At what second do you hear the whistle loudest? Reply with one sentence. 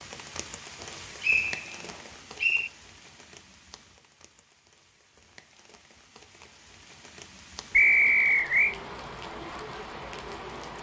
The loudest moment of the whistle is at 8 seconds.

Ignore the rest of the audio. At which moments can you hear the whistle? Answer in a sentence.
You can hear the whistle from 1.2 to 2.7 s and from 7.7 to 8.8 s.